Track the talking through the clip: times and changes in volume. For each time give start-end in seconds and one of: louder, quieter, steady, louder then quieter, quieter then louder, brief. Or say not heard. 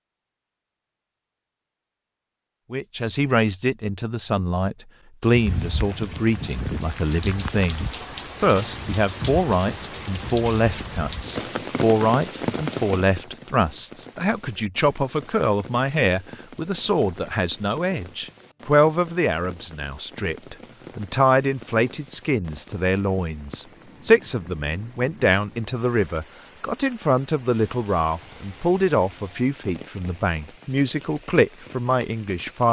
2.7-32.6 steady.